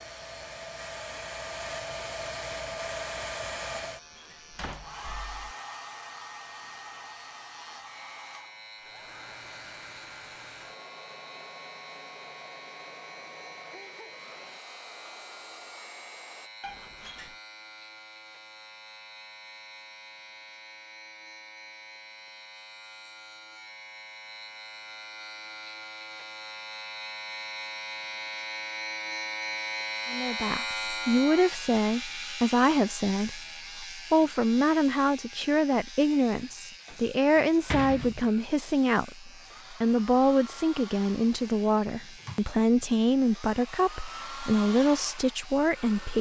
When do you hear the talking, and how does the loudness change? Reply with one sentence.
You can hear the talking from 30.1 to 46.1 s, at a steady volume.